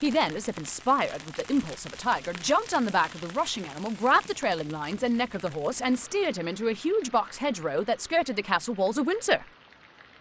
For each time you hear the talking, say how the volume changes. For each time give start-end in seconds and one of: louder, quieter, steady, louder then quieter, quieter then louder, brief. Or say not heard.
0.0-9.4 steady.